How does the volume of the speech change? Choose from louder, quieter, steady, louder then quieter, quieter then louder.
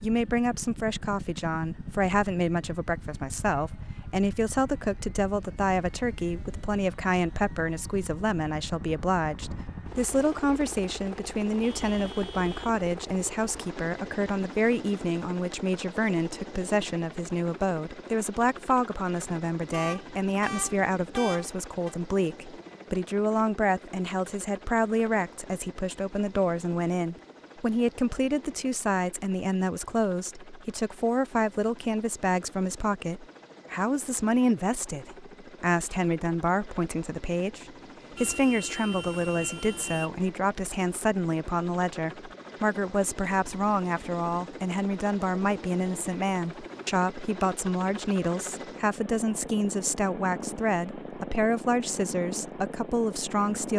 steady.